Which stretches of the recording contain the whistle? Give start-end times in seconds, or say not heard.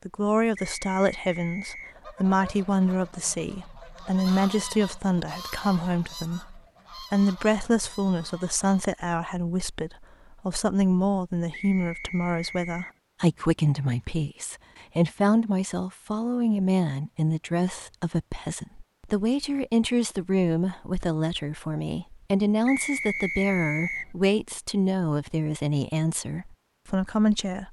0.6-1.9, 11.5-13.0, 22.6-24.1.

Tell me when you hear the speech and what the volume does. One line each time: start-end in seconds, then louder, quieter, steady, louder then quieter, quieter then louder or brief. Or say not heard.
0.1-27.6 steady.